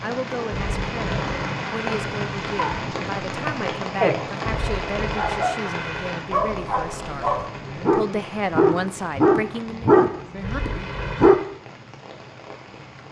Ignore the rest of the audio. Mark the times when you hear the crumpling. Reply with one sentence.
The crumpling can be heard from 0.5 to 2.9 s, from 4.4 to 6.2 s and from 10.4 to 11.5 s.